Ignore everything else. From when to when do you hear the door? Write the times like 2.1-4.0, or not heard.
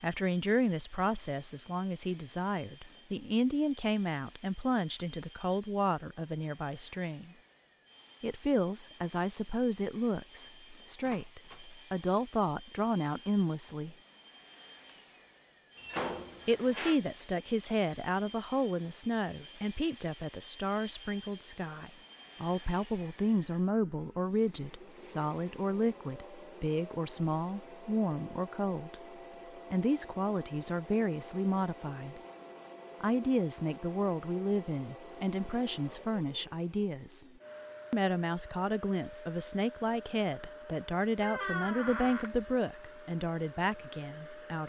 11.0-11.7, 15.8-17.0, 41.2-42.3.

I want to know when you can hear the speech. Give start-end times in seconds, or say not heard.
0.0-7.3, 8.2-13.9, 16.4-29.0, 29.7-32.2, 33.0-37.2, 37.9-44.6.